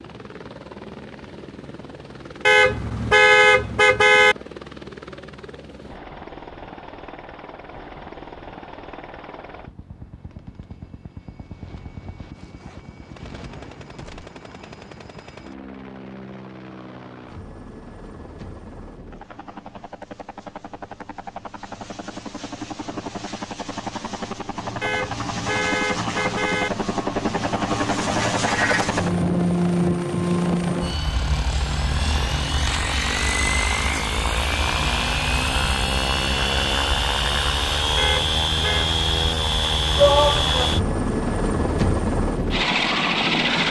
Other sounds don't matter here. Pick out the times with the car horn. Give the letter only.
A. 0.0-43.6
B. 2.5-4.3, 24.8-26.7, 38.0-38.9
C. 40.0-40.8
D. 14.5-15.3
B.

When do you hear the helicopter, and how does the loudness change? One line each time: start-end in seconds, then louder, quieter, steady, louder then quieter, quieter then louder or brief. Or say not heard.
0.0-43.6 louder.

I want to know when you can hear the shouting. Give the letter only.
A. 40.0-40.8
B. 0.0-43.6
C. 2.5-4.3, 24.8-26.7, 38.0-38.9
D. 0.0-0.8
A.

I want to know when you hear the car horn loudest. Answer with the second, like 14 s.
3 s.